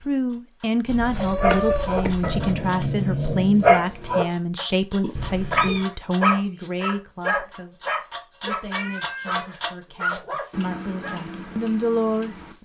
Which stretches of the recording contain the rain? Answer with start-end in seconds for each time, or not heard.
not heard.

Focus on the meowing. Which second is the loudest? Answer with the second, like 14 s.
2 s.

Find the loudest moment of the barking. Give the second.
4 s.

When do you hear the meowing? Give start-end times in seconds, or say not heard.
0.9-2.5, 5.2-5.9, 8.7-9.4.